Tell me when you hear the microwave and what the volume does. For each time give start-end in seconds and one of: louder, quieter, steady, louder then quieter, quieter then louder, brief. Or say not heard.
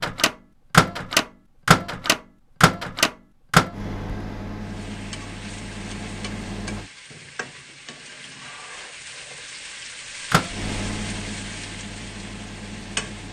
0.0-6.8 quieter
10.3-13.2 brief.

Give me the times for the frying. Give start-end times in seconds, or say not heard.
4.6-13.2.